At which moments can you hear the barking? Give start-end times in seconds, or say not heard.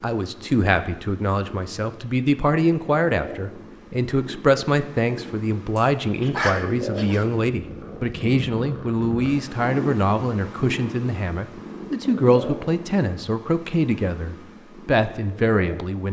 5.8-7.2.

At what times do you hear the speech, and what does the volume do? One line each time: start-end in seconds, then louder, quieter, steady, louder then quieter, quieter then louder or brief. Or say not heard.
0.0-16.0 steady.